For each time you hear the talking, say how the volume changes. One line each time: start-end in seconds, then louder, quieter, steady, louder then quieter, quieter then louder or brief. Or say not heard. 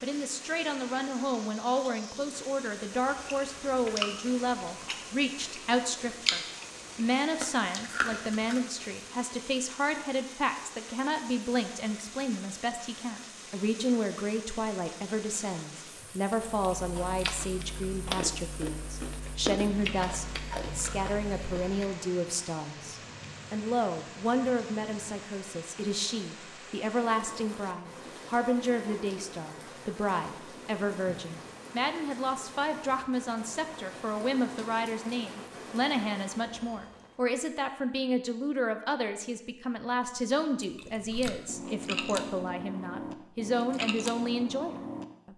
0.0-45.3 steady.